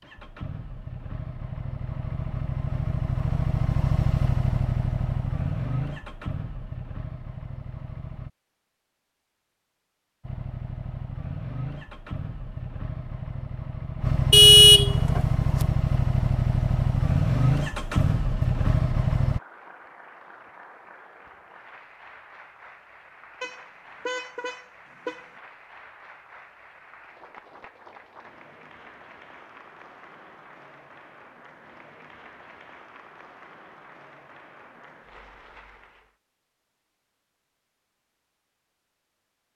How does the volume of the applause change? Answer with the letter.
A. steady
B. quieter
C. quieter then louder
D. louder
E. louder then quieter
A.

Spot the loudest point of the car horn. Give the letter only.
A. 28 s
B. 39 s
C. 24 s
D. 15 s
D.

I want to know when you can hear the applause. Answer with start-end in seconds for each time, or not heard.
19.2-36.1.